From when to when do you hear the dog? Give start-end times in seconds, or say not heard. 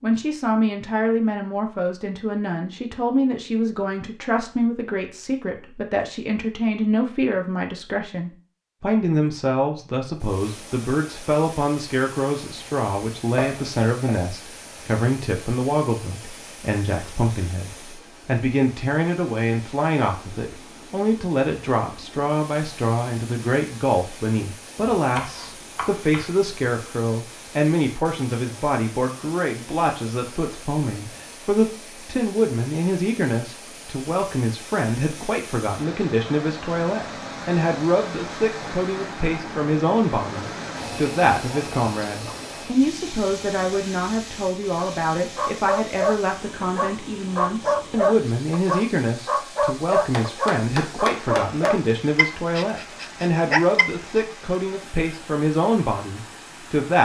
44.8-54.2.